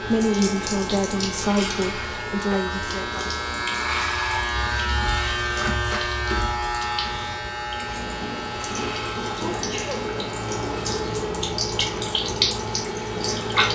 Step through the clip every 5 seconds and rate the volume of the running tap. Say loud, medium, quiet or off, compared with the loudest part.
medium, medium, loud.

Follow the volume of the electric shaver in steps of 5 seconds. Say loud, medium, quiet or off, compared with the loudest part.
loud, loud, medium.